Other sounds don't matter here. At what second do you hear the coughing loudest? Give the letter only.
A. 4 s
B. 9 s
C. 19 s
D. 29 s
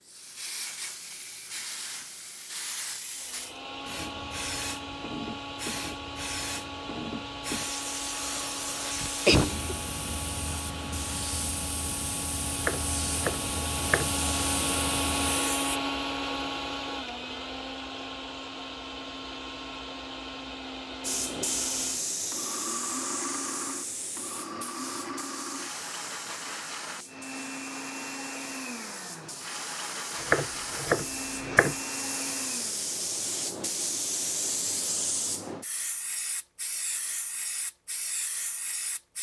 B.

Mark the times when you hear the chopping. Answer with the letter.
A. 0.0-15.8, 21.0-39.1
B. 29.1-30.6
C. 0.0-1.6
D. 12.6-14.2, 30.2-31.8
D.